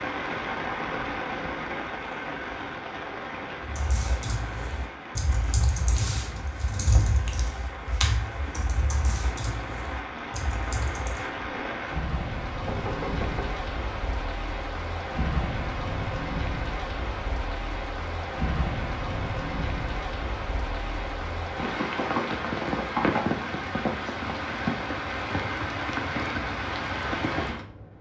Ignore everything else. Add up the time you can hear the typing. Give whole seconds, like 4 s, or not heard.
8 s.